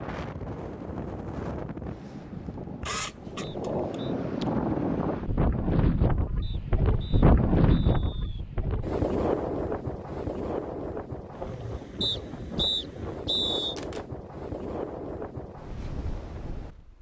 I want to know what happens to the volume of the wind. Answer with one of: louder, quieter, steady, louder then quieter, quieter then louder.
louder then quieter.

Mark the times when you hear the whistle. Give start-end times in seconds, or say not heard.
3.4-4.2, 6.4-8.4, 12.0-13.8.